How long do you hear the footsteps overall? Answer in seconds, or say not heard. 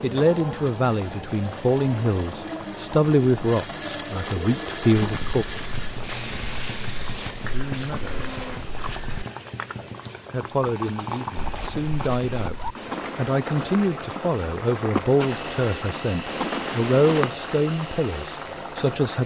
10 s.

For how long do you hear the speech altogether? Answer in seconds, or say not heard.
15 s.